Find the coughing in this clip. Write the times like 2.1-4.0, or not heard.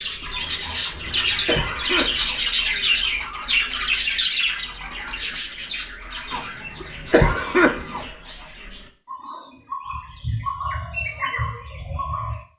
0.7-2.4, 6.3-8.1.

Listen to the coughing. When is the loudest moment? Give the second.
8 s.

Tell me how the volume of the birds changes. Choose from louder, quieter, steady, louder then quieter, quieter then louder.
quieter then louder.